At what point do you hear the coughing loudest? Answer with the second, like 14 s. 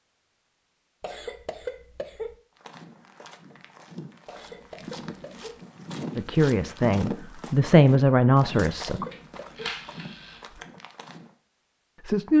2 s.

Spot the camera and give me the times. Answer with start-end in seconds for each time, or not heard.
9.1-10.4.